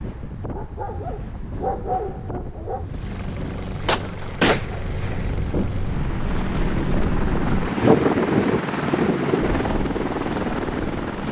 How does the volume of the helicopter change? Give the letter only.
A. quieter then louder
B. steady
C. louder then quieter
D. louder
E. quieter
D.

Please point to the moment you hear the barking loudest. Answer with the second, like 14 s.
2 s.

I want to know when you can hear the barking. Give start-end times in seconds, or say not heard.
0.5-2.9.